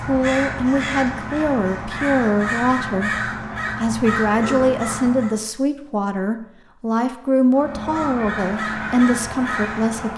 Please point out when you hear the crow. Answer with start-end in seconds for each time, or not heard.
0.0-5.3, 7.5-10.1.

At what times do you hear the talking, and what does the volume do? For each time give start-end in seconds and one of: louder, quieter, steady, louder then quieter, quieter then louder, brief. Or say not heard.
0.0-10.1 steady.